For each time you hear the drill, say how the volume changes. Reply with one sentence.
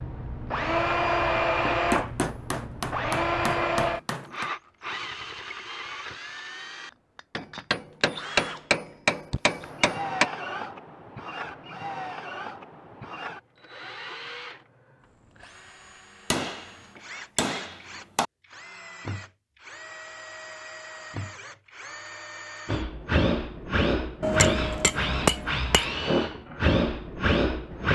You can hear the drill from 0.0 to 27.9 s, getting quieter then louder.